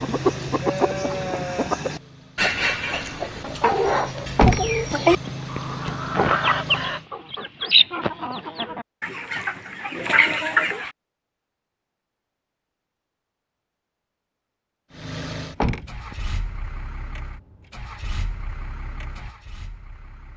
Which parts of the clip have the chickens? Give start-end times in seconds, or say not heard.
0.0-10.9.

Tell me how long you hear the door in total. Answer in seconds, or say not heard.
2 s.